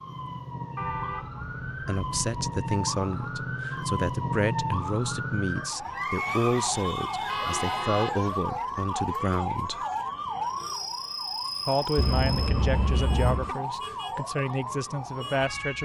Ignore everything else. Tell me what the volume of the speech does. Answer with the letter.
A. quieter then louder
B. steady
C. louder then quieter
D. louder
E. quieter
B.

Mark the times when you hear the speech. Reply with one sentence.
You can hear the speech from 1.9 to 9.8 s and from 11.7 to 15.7 s.